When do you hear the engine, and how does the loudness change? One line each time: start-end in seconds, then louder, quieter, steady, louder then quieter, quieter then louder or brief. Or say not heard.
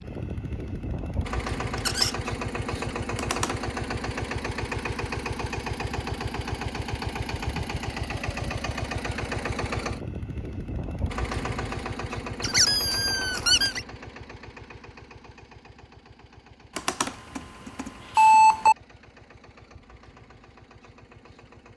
0.0-21.7 quieter.